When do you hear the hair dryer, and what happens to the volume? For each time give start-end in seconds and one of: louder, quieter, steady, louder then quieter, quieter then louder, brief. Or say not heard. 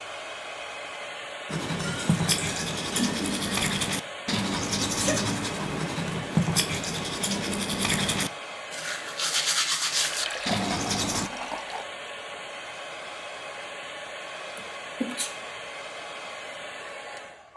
0.0-17.5 steady.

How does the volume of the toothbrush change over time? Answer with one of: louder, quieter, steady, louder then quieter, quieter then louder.
steady.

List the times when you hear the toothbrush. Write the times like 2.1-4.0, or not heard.
1.4-11.3.